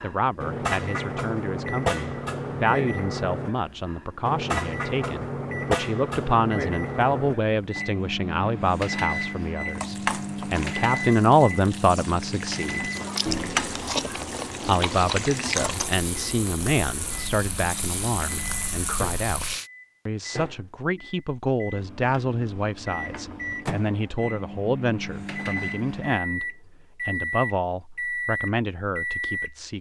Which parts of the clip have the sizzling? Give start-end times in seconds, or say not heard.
9.7-19.7.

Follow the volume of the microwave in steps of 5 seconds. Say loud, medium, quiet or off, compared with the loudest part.
loud, loud, loud, medium, medium, loud.